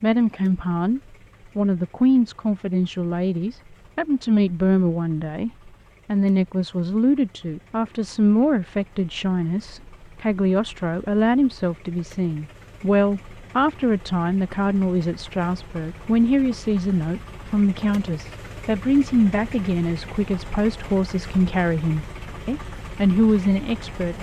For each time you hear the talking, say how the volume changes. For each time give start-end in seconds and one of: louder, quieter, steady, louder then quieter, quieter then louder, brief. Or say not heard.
0.0-24.1 steady.